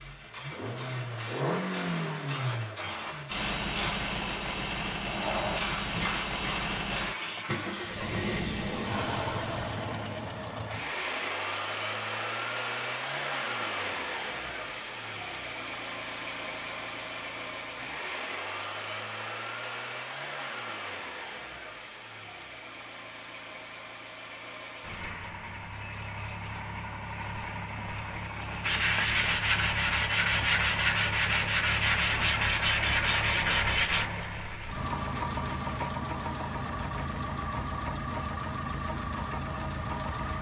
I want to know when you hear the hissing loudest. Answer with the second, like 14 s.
6 s.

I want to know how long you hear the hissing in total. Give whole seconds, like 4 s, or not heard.
10 s.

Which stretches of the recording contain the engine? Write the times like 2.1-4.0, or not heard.
0.0-40.3.